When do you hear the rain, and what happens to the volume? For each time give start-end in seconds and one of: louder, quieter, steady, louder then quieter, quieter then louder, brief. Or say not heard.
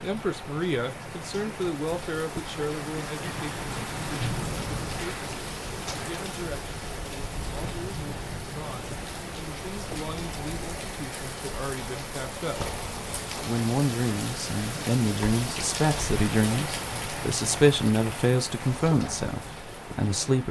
0.0-20.4 steady.